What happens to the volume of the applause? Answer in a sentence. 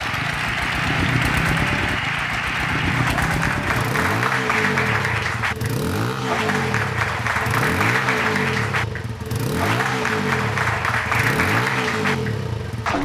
The volume of the applause stays about the same.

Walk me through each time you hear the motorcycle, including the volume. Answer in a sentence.
The motorcycle can be heard from 0.0 to 12.9 s, at a steady volume.